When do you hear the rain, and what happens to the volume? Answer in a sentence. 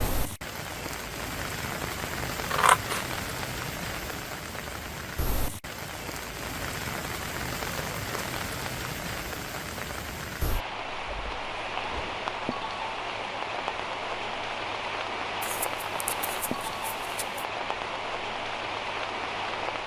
The rain can be heard from 0.0 to 19.8 s, at a steady volume.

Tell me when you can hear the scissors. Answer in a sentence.
The scissors can be heard from 1.8 to 3.0 s and from 15.4 to 17.4 s.